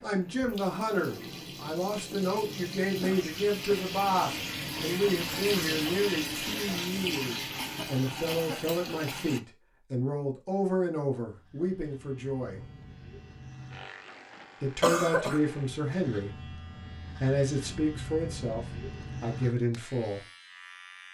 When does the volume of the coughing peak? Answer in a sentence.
The loudest moment of the coughing is at 15 seconds.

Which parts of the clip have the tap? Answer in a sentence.
You can hear the tap from 0.0 to 9.4 s.